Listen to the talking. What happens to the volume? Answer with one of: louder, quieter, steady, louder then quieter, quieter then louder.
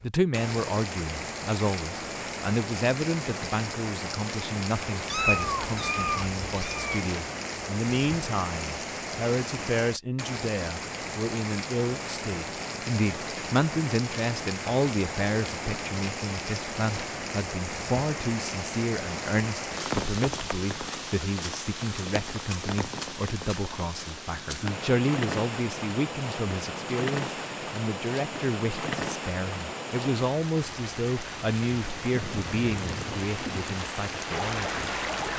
steady.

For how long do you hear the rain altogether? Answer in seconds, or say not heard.
35 s.